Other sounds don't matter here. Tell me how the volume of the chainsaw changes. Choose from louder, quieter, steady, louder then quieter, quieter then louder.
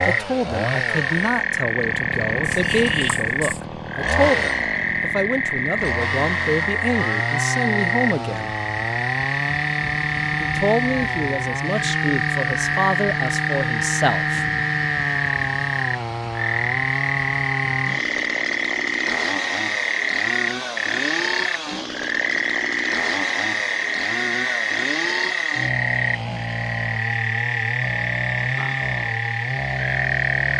steady.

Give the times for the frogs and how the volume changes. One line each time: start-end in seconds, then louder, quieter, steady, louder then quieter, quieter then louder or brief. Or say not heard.
0.0-30.5 steady.